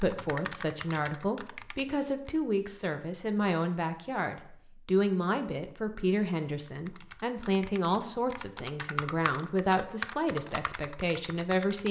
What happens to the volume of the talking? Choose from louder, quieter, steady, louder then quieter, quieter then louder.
steady.